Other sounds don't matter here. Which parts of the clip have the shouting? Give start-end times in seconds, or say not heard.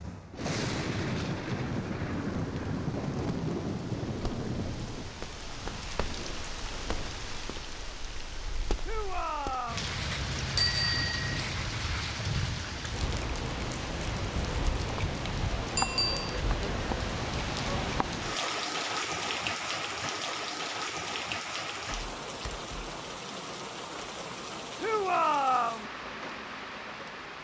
8.8-9.9, 24.8-25.9.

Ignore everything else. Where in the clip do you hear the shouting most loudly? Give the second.
25 s.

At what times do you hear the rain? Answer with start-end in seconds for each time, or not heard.
0.0-27.3.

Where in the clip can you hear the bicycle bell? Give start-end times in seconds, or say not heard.
10.6-11.3, 15.8-16.4.